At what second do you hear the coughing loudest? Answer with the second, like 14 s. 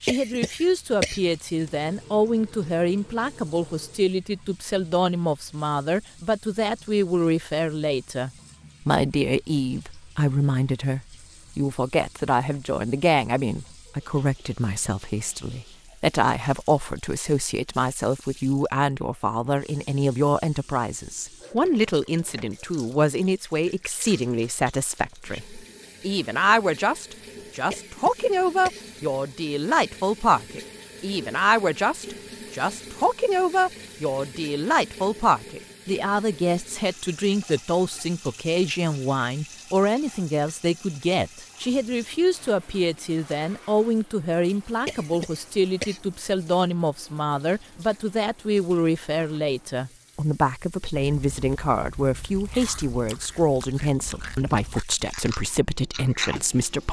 1 s.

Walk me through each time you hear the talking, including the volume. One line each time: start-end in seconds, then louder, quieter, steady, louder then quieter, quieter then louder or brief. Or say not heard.
0.0-56.8 steady.